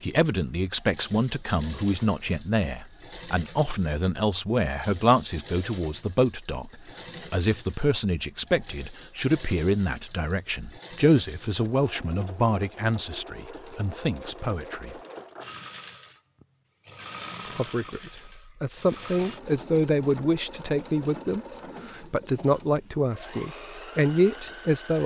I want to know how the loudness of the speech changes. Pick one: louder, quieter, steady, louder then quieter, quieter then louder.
steady.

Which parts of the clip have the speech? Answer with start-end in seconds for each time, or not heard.
0.0-14.9, 17.6-25.0.